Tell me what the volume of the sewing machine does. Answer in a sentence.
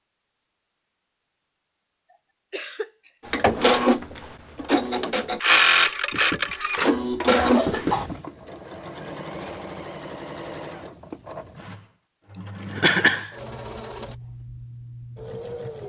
The volume of the sewing machine goes down.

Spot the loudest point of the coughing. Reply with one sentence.
The loudest moment of the coughing is at 13 seconds.